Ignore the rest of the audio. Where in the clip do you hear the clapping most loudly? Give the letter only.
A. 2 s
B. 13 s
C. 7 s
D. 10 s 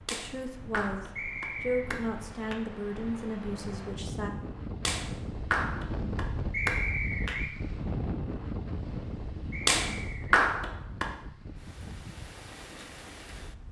D.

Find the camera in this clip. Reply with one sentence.
You can't hear the camera here.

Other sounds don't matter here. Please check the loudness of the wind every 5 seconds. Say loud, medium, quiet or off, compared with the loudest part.
medium, loud, medium.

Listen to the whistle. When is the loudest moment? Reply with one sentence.
The loudest moment of the whistle is at 7 seconds.